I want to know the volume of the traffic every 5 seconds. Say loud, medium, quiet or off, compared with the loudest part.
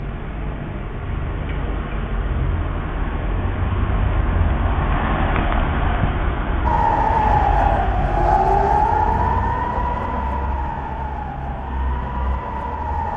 loud, loud, medium.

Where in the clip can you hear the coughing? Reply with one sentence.
You can't hear the coughing here.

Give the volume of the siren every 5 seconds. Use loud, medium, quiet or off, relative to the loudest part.
off, loud, medium.